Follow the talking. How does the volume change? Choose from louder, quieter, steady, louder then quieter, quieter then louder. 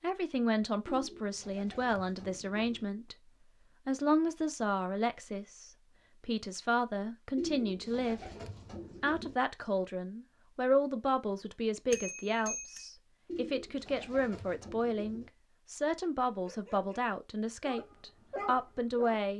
steady.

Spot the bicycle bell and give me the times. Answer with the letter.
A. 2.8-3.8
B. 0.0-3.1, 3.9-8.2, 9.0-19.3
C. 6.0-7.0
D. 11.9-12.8
D.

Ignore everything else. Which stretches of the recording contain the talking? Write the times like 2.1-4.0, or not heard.
0.0-3.1, 3.9-8.2, 9.0-19.3.